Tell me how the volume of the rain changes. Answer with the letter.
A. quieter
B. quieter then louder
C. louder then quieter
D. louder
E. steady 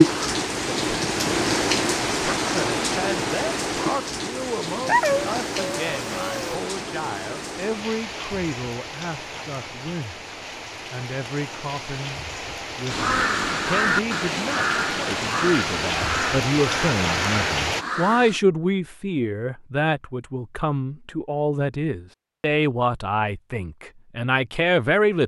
B.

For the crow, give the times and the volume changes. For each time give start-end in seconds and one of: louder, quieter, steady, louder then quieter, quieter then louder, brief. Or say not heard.
12.9-18.4 quieter.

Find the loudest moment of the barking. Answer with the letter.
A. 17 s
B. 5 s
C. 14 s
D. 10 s
B.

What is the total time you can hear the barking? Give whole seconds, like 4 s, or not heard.
2 s.